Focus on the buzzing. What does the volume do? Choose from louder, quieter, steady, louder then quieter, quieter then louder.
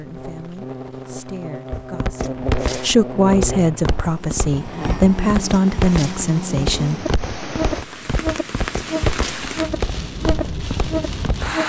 louder.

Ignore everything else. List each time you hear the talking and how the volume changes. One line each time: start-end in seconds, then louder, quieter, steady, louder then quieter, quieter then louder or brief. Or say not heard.
0.0-7.1 louder.